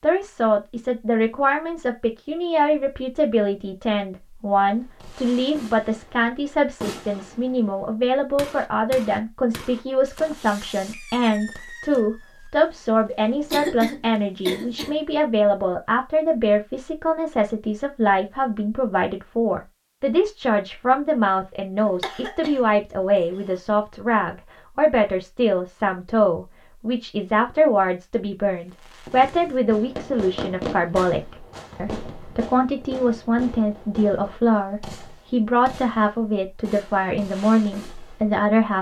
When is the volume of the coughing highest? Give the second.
14 s.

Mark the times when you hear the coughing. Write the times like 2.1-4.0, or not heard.
13.5-14.9, 21.8-23.6.